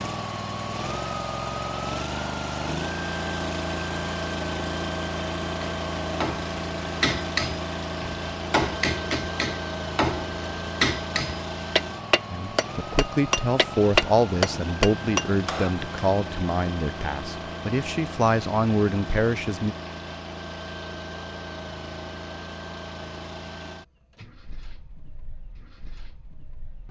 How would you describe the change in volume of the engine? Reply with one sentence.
The volume of the engine goes down.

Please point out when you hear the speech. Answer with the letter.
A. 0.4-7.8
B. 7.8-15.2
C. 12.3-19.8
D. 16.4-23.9
C.